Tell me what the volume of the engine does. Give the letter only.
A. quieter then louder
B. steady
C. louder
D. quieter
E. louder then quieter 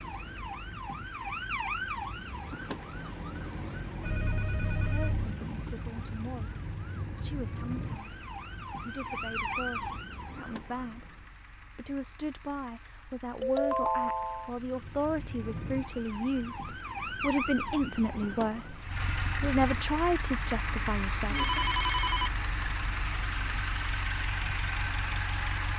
C.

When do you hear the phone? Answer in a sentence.
The phone can be heard from 4.0 to 5.3 s, from 13.4 to 14.5 s and from 21.3 to 22.3 s.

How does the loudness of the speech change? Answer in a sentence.
The loudness of the speech goes up.